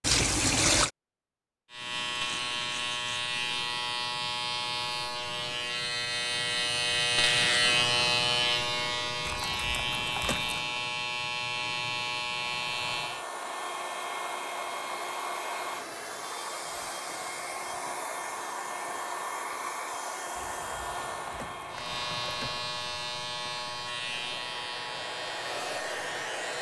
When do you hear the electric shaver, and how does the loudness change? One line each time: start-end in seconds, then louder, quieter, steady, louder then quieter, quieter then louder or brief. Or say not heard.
1.7-13.2 louder then quieter
21.7-26.5 quieter.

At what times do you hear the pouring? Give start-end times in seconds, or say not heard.
0.0-0.9, 9.2-10.7, 20.4-22.6.